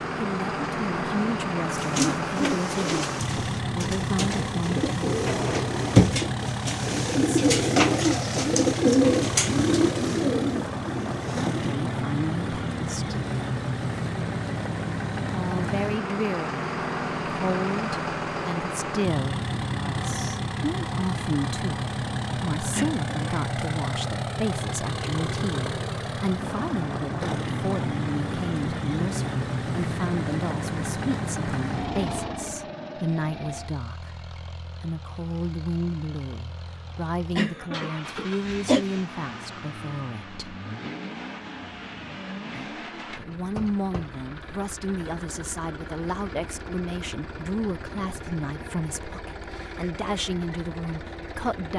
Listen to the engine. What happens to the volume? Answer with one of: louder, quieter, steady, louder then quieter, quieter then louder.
quieter.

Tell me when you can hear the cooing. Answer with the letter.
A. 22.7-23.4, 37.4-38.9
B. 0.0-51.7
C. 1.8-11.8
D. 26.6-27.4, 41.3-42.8
C.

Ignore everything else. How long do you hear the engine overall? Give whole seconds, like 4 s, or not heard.
52 s.